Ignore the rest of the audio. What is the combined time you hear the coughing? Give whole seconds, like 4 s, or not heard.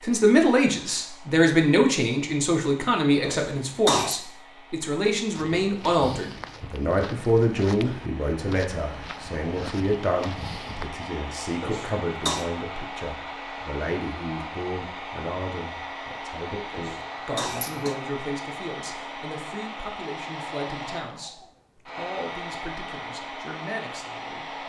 3 s.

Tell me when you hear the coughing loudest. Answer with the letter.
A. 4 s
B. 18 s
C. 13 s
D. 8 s
A.